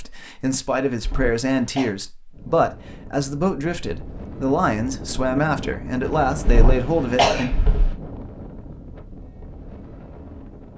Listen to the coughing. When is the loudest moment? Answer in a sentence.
The loudest moment of the coughing is at 7 seconds.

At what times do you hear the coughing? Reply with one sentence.
The coughing can be heard from 1.0 to 1.9 s and from 6.5 to 8.0 s.